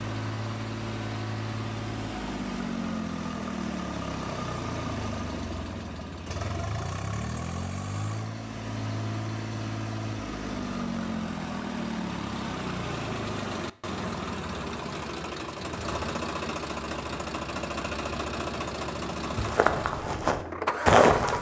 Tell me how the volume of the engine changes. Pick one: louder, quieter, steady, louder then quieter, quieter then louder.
steady.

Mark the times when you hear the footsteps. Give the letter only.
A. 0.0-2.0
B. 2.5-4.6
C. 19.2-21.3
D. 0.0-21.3
C.